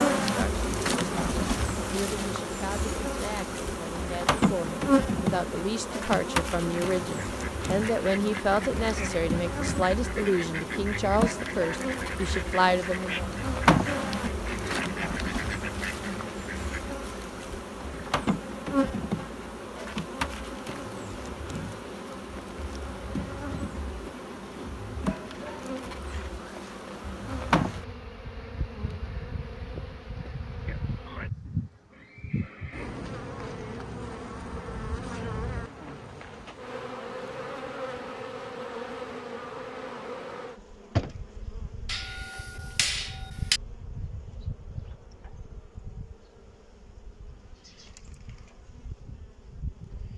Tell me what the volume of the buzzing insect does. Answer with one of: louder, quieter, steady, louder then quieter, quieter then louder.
quieter.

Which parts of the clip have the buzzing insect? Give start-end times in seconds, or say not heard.
0.0-50.1.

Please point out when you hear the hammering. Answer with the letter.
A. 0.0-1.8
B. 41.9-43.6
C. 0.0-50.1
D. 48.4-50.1
B.